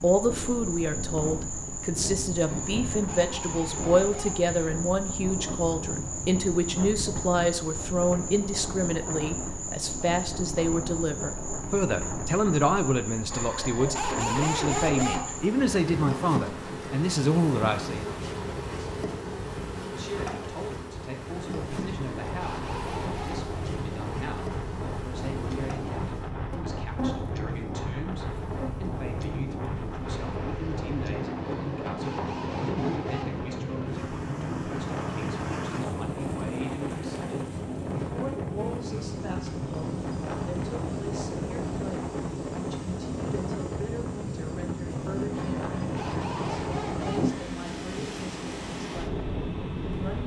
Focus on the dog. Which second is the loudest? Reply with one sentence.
The volume of the dog peaks at 15 seconds.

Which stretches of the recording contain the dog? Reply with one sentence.
You can hear the dog from 2.4 to 4.5 s, from 13.3 to 15.3 s, from 21.9 to 23.5 s, from 31.4 to 33.3 s and from 45.3 to 47.5 s.